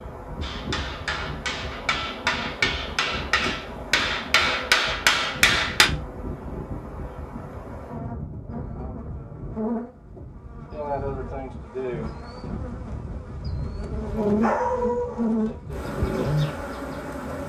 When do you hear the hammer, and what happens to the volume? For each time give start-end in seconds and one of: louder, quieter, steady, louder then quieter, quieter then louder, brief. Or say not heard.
0.4-5.9 louder.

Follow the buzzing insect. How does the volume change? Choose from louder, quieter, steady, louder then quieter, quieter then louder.
louder.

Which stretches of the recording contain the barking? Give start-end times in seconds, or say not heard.
14.1-15.4.